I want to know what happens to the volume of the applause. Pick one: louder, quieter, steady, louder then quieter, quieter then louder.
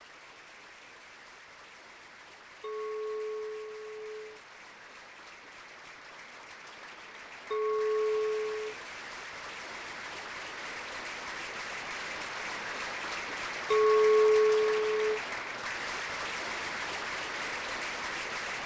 louder.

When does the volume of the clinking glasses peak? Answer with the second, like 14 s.
14 s.